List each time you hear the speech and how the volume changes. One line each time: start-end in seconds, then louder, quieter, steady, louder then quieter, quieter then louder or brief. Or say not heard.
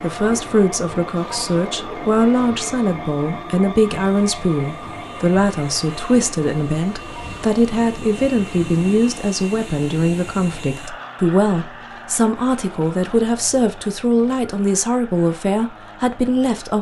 0.0-16.7 steady.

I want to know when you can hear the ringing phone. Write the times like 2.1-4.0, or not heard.
not heard.